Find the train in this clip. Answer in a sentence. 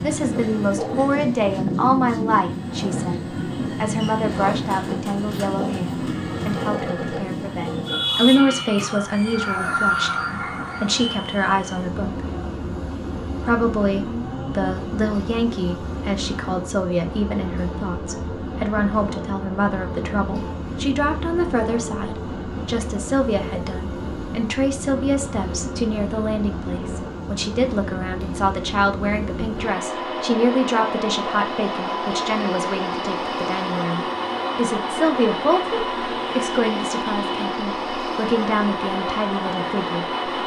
You can hear the train from 0.0 to 40.4 s.